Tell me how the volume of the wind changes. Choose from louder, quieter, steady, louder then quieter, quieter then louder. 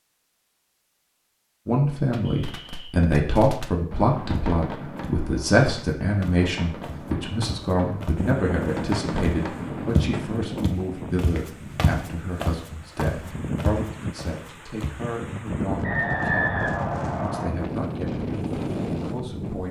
quieter then louder.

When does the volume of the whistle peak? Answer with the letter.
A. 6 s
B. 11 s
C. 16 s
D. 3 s
C.